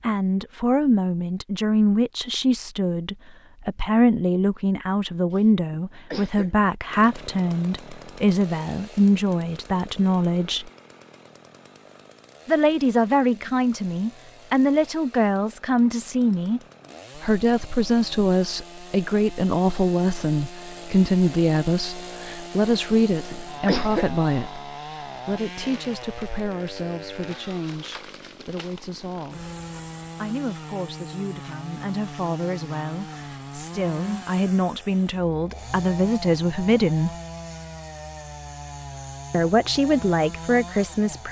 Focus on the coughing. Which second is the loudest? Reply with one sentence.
The volume of the coughing peaks at 24 seconds.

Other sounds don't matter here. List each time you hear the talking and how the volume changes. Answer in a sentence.
The talking can be heard from 0.0 to 10.7 s, at a steady volume; from 12.4 to 29.6 s, getting quieter; from 30.2 to 37.1 s, getting louder; and briefly from 39.3 to 41.2 s.